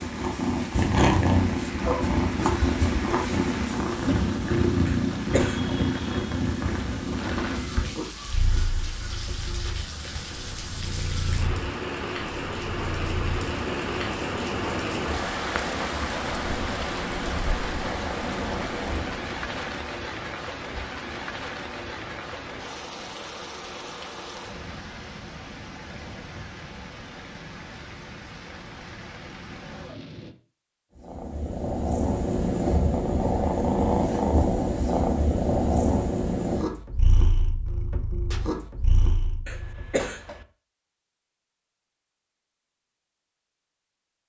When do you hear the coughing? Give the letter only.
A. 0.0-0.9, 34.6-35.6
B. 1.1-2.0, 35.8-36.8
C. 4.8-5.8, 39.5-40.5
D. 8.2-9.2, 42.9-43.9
C.